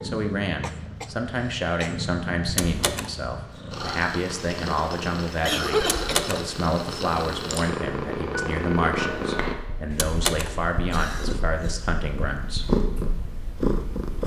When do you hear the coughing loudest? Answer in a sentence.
The volume of the coughing peaks at 6 seconds.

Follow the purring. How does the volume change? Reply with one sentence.
The volume of the purring goes up.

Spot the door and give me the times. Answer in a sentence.
You can hear the door from 2.5 to 3.1 s, from 5.8 to 6.5 s and from 9.9 to 10.6 s.